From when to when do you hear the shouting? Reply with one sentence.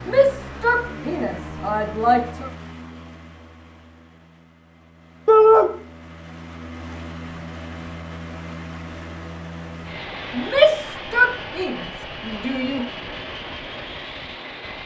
The shouting can be heard from 0.1 to 2.5 s, from 5.2 to 5.7 s and from 10.3 to 12.8 s.